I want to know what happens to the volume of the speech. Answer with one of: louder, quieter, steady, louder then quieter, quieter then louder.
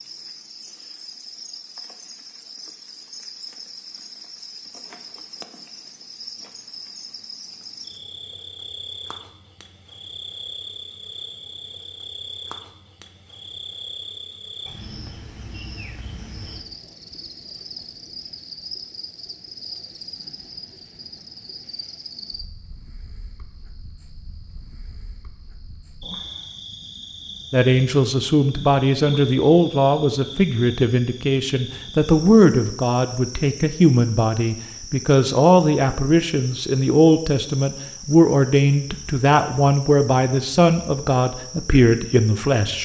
steady.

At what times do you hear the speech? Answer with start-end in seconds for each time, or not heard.
27.5-42.8.